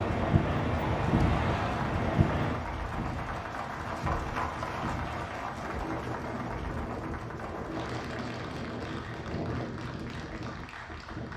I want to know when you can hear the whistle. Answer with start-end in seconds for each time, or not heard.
not heard.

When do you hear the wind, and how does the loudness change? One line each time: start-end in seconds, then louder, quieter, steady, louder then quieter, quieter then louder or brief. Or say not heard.
0.0-11.3 quieter.